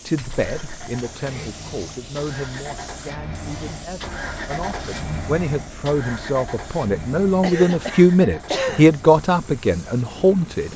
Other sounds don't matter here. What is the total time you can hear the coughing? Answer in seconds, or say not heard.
3 s.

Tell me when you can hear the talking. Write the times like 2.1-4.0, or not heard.
0.1-10.7.